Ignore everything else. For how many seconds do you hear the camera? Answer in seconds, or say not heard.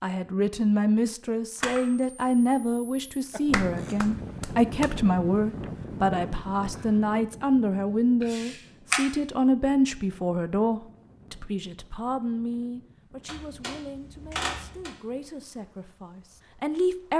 5 s.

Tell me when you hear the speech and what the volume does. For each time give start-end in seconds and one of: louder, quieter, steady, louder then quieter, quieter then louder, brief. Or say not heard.
0.0-17.1 quieter.